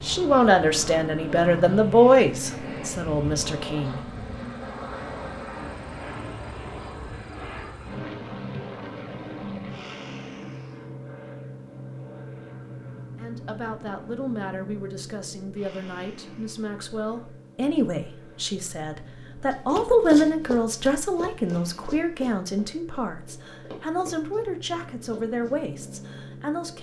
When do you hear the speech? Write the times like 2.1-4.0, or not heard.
0.0-4.0, 13.2-26.7.